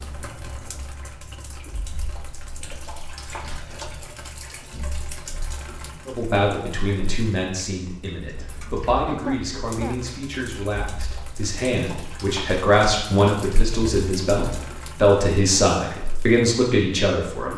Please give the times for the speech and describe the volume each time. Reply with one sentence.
You can hear the speech from 6.0 to 17.5 s, getting louder.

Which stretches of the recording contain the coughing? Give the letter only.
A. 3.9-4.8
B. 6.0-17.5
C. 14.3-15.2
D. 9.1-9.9
D.